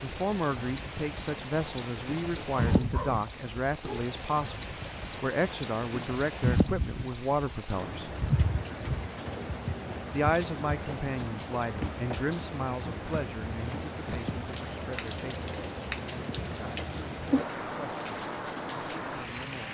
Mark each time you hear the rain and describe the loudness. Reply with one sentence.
You can hear the rain from 0.0 to 19.6 s, at a steady volume.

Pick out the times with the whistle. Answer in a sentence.
You can't hear the whistle here.